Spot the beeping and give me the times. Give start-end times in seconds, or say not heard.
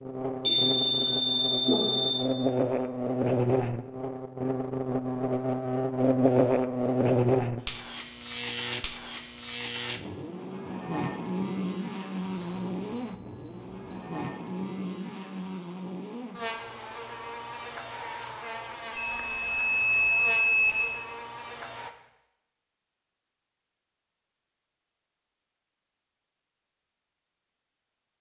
0.4-2.3, 12.2-14.1, 18.9-20.9.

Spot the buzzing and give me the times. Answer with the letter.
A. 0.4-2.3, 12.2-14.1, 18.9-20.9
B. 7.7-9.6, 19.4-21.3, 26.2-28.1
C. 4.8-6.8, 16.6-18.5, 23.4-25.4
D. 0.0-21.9
D.